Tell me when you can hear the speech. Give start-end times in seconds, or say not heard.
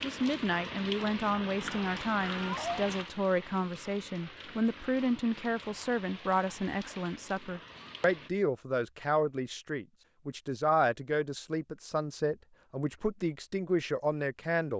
0.0-14.7.